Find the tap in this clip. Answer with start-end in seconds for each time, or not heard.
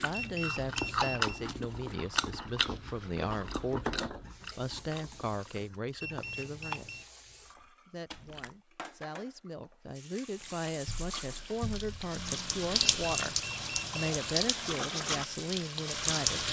0.0-16.4.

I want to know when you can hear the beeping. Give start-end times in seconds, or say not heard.
0.1-1.4, 6.0-7.0, 13.0-14.2.